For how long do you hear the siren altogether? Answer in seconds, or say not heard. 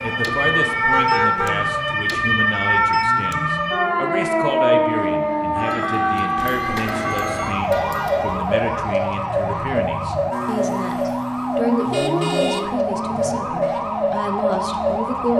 15 s.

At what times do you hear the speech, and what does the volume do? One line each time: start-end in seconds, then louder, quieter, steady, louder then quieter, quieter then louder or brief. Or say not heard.
0.0-15.3 steady.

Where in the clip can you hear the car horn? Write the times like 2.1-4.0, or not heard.
0.9-1.6, 6.3-8.4, 11.8-13.5.